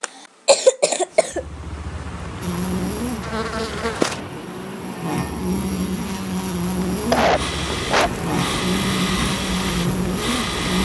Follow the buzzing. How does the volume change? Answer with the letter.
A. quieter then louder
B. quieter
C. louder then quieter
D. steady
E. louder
D.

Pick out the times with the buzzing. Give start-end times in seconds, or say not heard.
2.4-10.8.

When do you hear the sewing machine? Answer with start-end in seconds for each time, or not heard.
7.3-10.8.